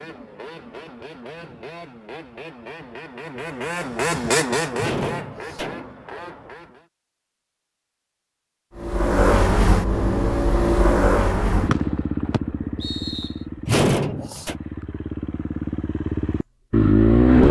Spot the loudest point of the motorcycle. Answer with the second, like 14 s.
17 s.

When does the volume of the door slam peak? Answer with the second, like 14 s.
14 s.